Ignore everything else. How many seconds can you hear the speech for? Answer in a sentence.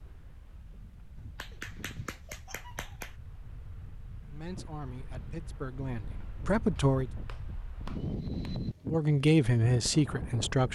The speech can be heard for 5 seconds in total.